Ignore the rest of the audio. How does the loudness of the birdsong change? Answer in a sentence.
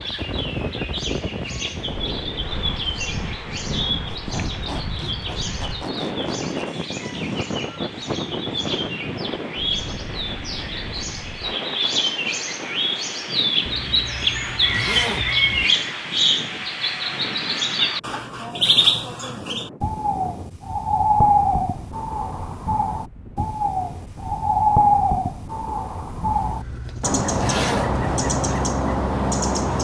The loudness of the birdsong goes up.